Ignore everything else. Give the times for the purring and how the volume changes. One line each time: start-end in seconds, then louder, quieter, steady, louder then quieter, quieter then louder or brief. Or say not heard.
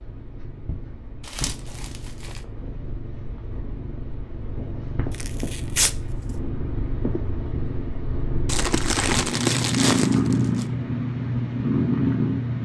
0.0-12.6 louder.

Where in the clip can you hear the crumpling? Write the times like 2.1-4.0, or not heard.
1.2-2.4, 5.1-6.0, 8.4-10.7.